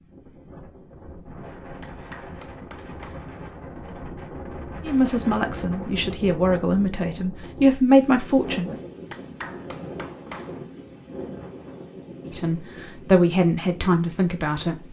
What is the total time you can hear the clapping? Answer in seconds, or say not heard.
3 s.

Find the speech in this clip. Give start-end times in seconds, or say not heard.
4.8-8.8, 12.2-14.8.